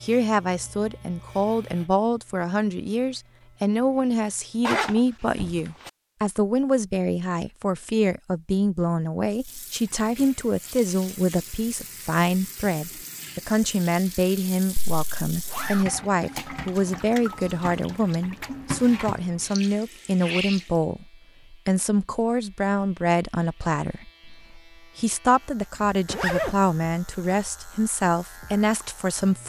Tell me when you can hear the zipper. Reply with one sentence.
The zipper can be heard from 4.7 to 5.9 s, from 14.8 to 15.8 s and from 26.1 to 26.6 s.